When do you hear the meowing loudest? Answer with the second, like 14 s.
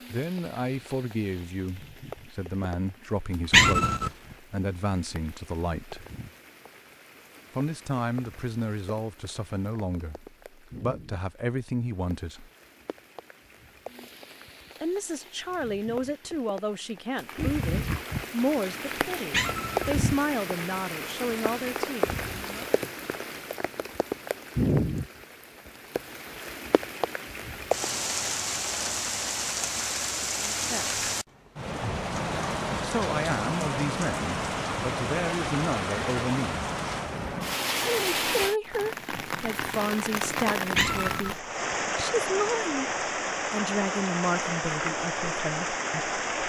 4 s.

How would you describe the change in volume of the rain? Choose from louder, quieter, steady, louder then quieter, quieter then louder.
louder.